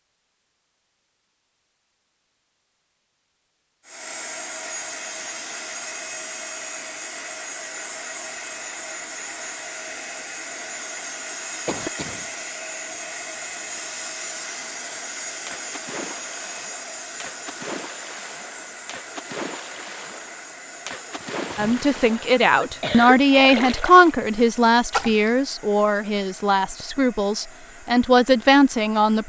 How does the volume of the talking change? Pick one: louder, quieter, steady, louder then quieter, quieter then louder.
quieter then louder.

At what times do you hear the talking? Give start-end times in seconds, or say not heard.
21.6-29.2.